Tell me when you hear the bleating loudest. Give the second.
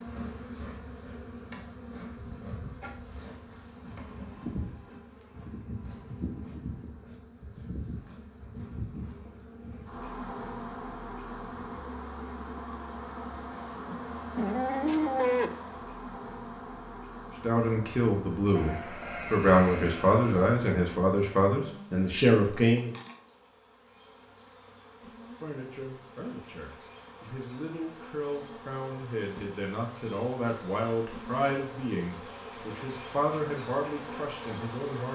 15 s.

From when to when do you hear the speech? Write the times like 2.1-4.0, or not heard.
17.4-22.9, 25.4-35.0.